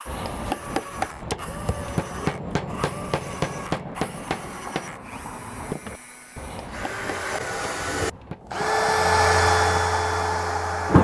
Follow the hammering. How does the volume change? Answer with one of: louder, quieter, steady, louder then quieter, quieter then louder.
quieter.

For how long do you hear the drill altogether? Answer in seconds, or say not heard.
11 s.